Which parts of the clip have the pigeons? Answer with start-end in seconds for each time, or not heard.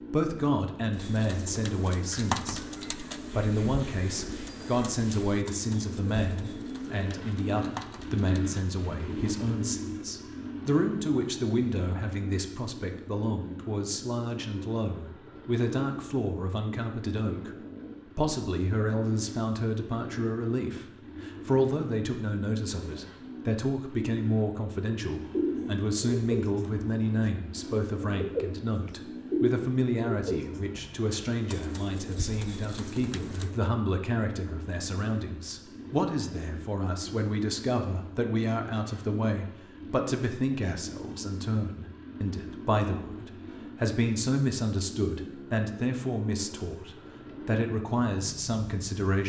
0.9-9.2, 25.3-33.5.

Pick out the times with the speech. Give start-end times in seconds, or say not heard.
0.1-2.6, 3.3-17.6, 18.1-49.2.